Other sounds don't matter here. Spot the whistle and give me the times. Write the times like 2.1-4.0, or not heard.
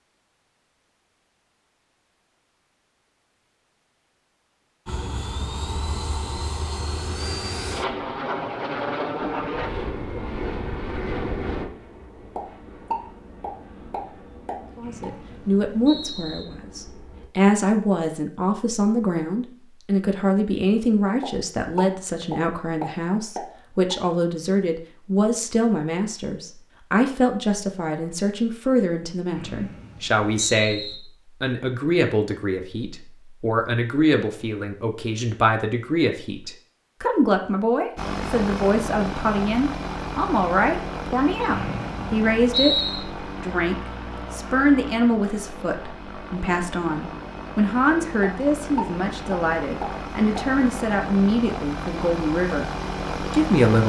14.8-16.4, 29.4-30.9, 41.5-43.0.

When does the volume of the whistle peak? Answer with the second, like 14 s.
43 s.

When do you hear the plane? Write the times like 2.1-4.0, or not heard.
4.8-17.3, 38.0-53.8.